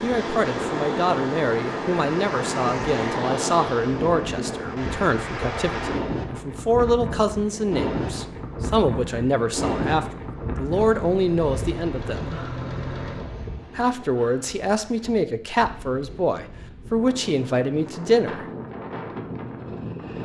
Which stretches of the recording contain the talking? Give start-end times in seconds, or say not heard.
0.0-12.3, 13.8-18.4.